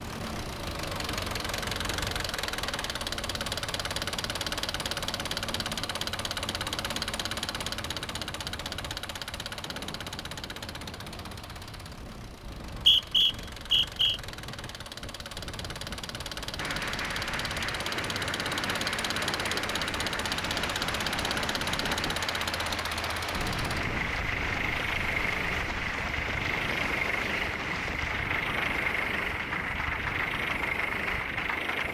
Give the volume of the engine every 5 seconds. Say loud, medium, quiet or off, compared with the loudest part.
loud, loud, medium, loud, loud, loud, loud.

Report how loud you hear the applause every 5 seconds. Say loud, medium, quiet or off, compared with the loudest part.
off, off, off, loud, loud, loud, loud.